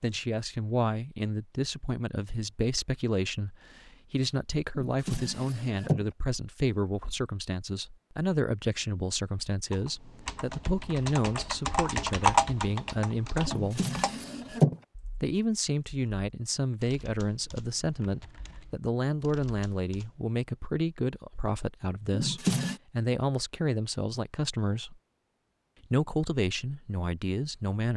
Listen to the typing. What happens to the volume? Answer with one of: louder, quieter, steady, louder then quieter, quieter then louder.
louder then quieter.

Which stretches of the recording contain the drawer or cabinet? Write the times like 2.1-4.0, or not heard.
4.8-6.0, 13.4-14.8, 22.1-22.8.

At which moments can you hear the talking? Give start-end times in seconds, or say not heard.
0.0-13.8, 15.2-24.9, 25.9-27.9.